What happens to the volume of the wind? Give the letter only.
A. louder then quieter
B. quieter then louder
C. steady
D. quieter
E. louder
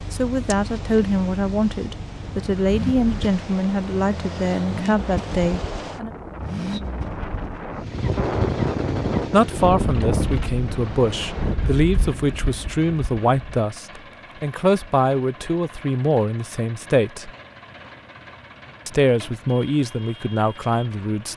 A.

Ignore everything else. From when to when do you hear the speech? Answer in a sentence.
The speech can be heard from 0.1 to 6.1 s, from 9.3 to 17.3 s and from 18.9 to 21.3 s.